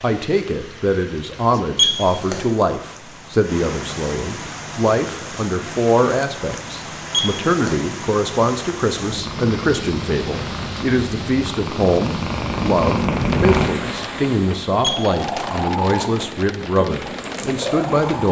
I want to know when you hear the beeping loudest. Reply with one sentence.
The loudest moment of the beeping is at 2 seconds.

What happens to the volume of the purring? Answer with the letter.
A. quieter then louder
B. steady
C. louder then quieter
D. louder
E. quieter
C.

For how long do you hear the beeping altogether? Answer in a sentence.
You can hear the beeping for 2 seconds altogether.